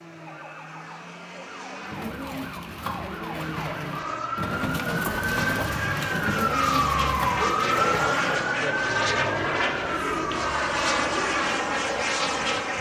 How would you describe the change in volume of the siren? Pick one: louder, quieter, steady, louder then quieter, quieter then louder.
louder then quieter.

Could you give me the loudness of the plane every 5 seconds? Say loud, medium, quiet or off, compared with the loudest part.
quiet, loud, loud.